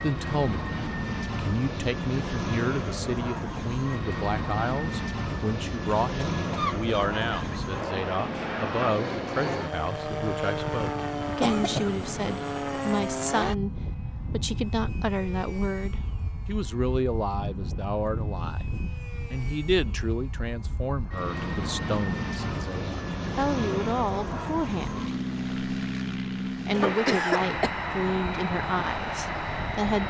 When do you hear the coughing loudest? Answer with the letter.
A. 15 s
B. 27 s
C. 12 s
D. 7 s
B.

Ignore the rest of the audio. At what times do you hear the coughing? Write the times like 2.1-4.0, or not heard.
6.0-7.7, 11.4-12.4, 26.7-27.7.